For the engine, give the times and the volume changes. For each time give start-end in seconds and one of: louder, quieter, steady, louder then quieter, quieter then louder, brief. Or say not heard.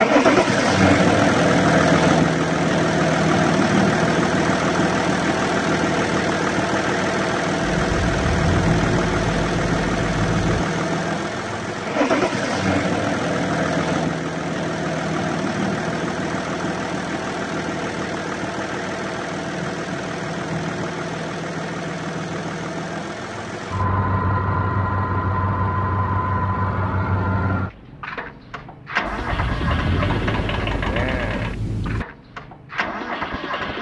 0.0-33.7 quieter.